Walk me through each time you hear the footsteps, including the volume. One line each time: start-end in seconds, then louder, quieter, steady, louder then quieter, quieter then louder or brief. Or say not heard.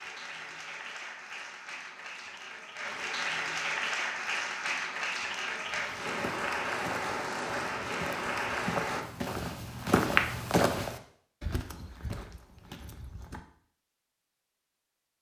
5.7-13.4 louder then quieter.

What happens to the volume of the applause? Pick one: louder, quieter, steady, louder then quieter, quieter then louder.
louder.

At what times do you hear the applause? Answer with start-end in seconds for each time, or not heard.
0.0-9.1.